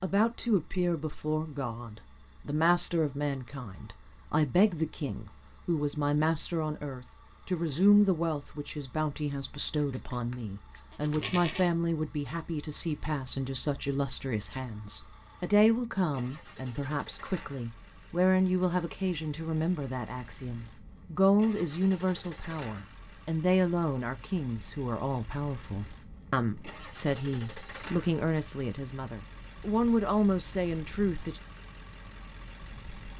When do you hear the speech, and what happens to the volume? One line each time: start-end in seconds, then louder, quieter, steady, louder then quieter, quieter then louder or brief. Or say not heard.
0.0-31.4 steady.